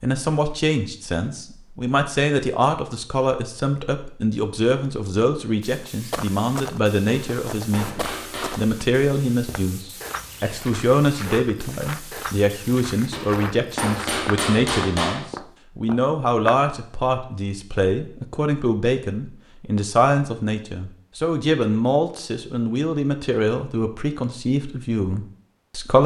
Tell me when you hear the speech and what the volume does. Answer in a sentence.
The speech can be heard from 0.0 to 26.0 s, at a steady volume.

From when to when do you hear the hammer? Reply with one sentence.
The hammer can be heard from 7.0 to 8.7 s and from 13.1 to 15.3 s.